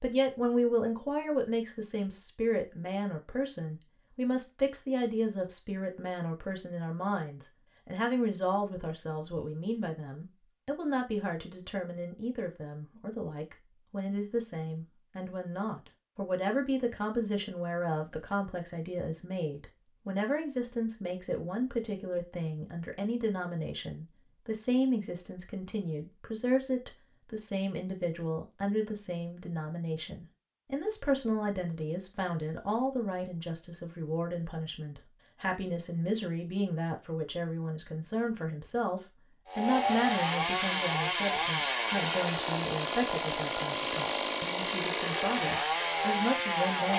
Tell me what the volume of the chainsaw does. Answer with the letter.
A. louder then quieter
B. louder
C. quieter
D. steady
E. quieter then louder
D.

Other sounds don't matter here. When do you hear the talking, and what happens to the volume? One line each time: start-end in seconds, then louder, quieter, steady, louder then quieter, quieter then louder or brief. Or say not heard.
0.0-46.9 steady.